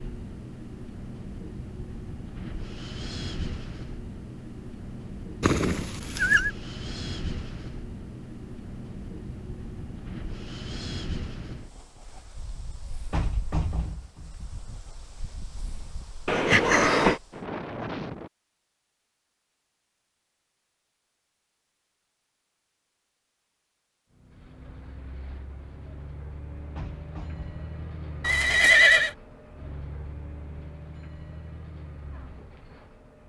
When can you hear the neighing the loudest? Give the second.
29 s.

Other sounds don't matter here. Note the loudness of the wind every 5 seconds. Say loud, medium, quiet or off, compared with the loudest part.
loud, loud, loud, loud, off, off, off.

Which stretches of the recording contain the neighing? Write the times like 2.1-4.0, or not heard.
5.4-6.5, 16.2-17.2, 28.2-29.1.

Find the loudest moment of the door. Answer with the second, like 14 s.
14 s.